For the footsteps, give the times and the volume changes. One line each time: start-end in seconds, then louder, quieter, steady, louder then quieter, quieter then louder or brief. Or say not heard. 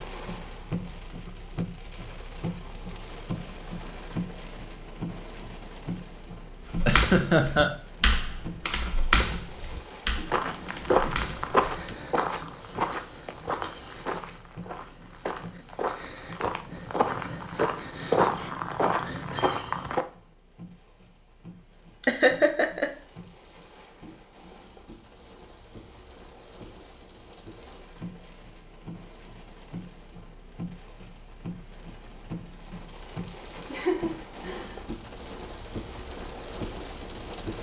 10.2-20.1 quieter then louder.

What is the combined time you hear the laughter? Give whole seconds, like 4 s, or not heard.
3 s.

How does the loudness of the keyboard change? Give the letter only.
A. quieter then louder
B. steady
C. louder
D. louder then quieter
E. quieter
D.